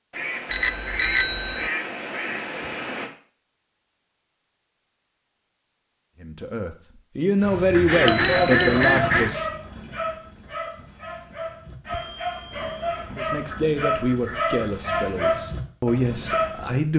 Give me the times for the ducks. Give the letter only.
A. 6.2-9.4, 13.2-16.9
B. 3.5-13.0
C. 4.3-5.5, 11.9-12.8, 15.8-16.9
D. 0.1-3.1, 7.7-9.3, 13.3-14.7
D.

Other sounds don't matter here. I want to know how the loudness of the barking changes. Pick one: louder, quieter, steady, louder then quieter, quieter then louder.
quieter then louder.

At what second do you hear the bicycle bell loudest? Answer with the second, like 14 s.
1 s.